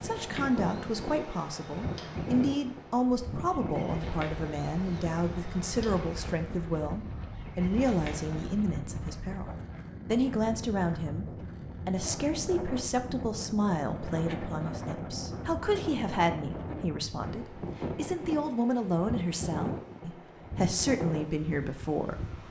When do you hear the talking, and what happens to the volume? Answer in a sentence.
You can hear the talking from 0.0 to 22.3 s, at a steady volume.